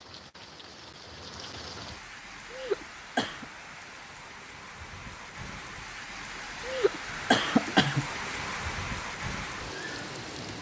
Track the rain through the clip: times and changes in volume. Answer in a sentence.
The rain can be heard from 0.0 to 10.5 s, getting louder.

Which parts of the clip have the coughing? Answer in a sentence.
The coughing can be heard from 2.5 to 3.5 s and from 6.7 to 8.1 s.